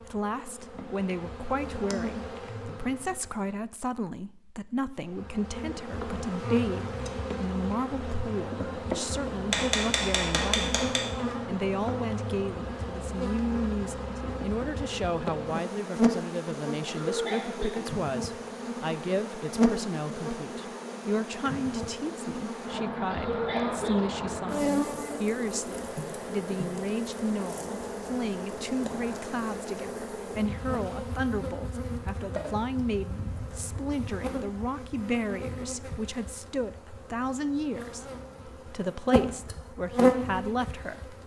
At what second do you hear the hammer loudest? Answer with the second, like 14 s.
10 s.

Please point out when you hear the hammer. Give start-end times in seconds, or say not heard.
9.5-11.1.